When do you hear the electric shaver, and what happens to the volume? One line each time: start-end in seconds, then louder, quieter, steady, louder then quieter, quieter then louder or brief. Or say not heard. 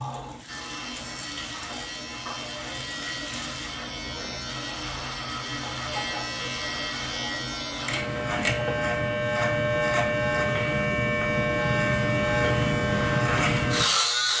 0.0-14.3 louder.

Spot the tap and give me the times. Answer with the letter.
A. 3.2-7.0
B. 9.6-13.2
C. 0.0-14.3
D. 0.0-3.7
D.